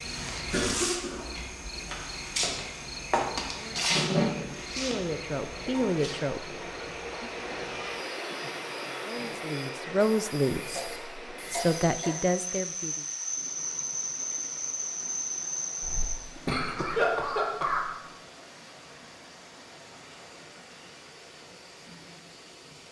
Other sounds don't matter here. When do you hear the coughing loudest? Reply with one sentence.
The loudest moment of the coughing is at 17 seconds.